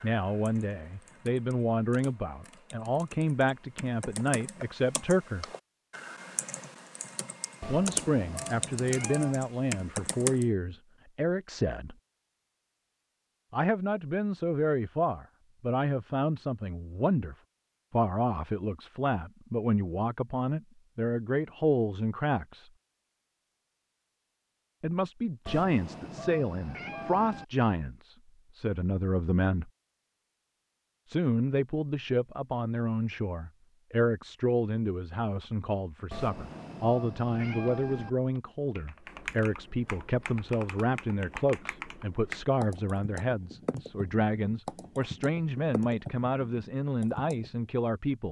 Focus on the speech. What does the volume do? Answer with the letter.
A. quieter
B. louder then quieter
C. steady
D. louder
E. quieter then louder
C.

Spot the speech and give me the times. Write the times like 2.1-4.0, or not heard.
0.0-5.5, 7.7-11.9, 13.5-22.7, 24.8-29.7, 31.1-48.2.